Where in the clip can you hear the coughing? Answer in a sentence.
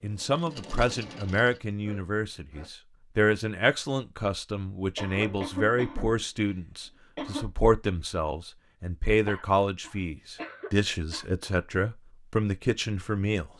The coughing can be heard from 0.9 to 2.7 s, from 5.0 to 7.5 s and from 9.2 to 11.2 s.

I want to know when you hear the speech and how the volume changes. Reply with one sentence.
The speech can be heard from 0.0 to 13.5 s, at a steady volume.